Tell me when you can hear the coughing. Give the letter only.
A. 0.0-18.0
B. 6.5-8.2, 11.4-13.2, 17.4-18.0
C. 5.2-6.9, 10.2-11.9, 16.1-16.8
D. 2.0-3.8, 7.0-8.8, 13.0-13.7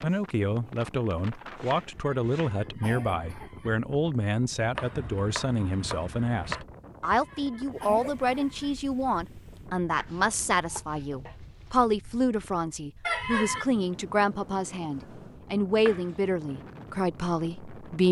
D.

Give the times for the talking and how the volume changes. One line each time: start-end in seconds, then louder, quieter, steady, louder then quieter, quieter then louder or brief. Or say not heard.
0.0-18.0 steady.